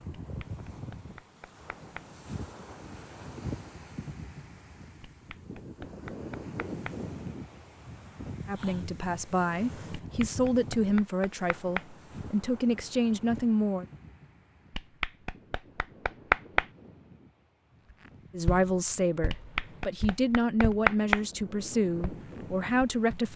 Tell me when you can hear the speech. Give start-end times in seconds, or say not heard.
8.4-13.8, 18.3-23.3.